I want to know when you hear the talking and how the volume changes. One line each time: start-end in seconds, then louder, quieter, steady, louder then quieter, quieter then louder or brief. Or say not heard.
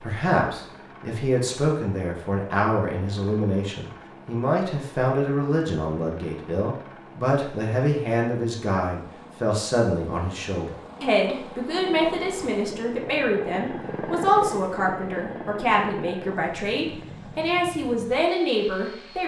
0.0-19.2 steady.